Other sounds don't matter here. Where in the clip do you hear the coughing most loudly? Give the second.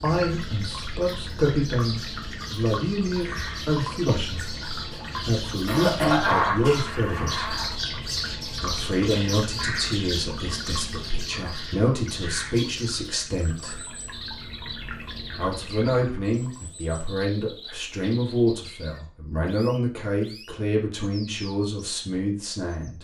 6 s.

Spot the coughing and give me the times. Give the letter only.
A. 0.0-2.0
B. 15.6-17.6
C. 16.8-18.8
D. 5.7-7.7
D.